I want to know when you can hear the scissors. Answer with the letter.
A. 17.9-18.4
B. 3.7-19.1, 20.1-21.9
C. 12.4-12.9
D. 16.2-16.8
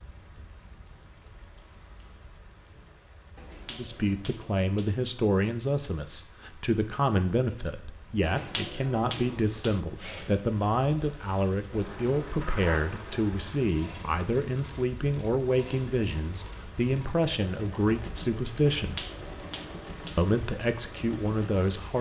C.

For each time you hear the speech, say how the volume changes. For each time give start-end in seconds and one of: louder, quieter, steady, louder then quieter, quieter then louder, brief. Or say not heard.
3.7-19.1 steady
20.1-21.9 brief.